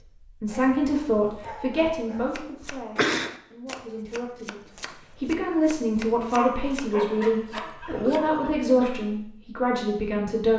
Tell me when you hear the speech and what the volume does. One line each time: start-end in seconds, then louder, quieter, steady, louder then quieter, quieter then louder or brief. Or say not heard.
0.2-10.5 quieter then louder.